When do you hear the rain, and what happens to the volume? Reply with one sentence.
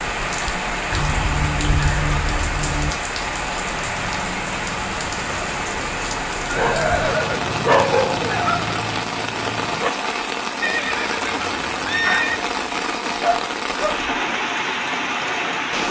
You can hear the rain from 0.0 to 15.8 s, at a steady volume.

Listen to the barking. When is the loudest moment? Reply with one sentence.
The volume of the barking peaks at 8 seconds.